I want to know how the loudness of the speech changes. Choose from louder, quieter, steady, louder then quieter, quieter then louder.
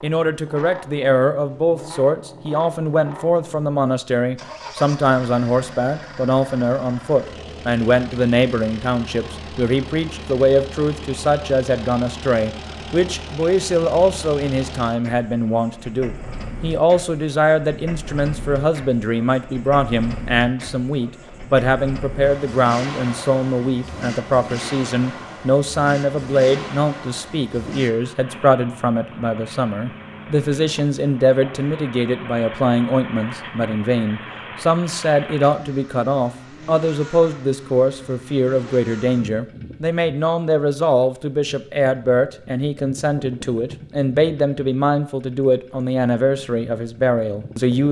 steady.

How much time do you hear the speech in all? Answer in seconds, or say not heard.
48 s.